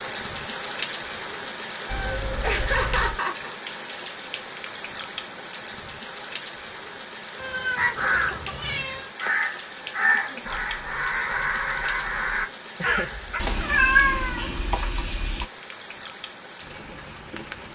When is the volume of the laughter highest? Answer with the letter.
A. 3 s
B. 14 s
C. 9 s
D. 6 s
A.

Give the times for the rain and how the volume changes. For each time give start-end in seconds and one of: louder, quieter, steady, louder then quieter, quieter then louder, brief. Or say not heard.
0.0-17.7 quieter.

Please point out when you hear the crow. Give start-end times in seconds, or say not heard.
7.8-13.4.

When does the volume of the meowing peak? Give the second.
14 s.